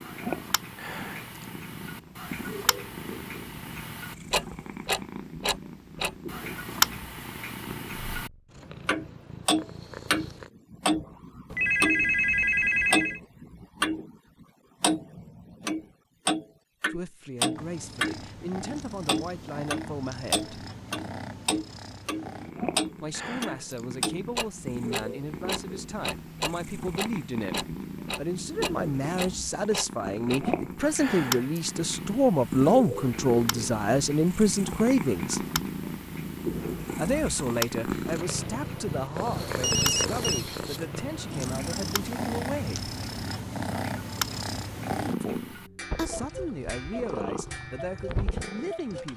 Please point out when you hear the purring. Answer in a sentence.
The purring can be heard from 0.0 to 10.5 s and from 17.5 to 49.1 s.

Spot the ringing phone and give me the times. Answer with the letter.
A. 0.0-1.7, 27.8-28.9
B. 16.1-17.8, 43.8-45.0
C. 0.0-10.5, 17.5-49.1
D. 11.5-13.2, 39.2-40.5
D.